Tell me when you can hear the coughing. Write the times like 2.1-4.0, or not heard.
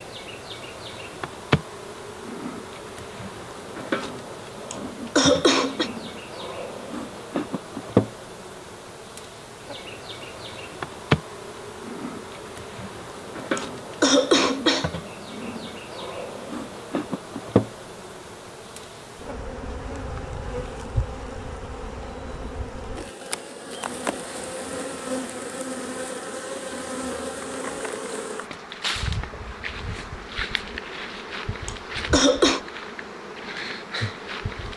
4.7-5.9, 13.6-14.9, 31.6-32.6.